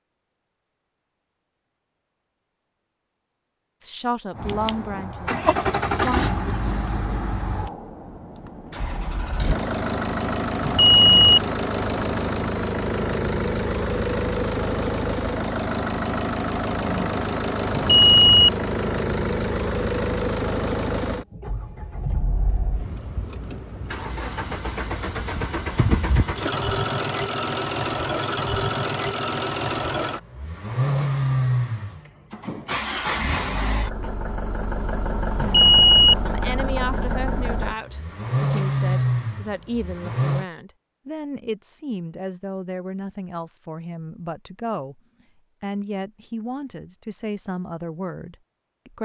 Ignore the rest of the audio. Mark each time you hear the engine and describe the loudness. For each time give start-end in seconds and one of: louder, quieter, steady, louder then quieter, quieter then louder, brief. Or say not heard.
4.3-40.5 steady.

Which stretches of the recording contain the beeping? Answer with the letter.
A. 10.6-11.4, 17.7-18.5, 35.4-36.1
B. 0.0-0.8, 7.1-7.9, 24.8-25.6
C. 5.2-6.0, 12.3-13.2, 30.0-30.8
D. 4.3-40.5
A.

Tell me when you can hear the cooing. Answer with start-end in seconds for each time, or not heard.
not heard.